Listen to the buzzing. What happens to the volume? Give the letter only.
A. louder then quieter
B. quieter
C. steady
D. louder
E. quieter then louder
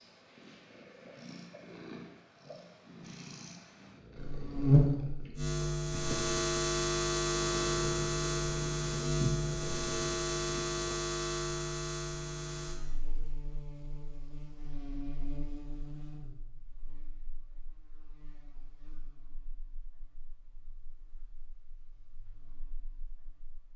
B.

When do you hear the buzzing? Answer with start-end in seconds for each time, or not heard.
4.2-23.7.